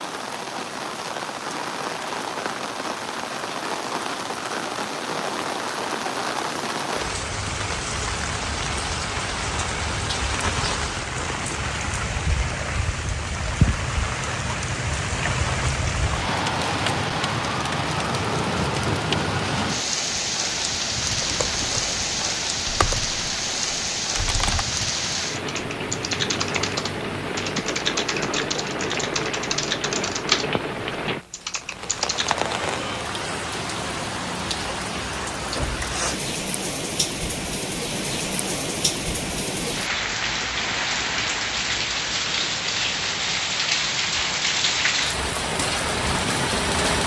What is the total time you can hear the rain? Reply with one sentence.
You can hear the rain for 47 seconds altogether.